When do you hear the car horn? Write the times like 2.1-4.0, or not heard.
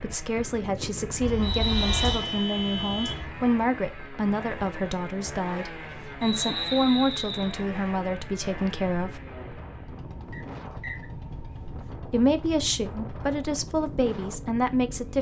1.2-3.2.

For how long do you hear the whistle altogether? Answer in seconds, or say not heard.
3 s.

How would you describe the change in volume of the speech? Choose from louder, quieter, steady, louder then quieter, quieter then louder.
steady.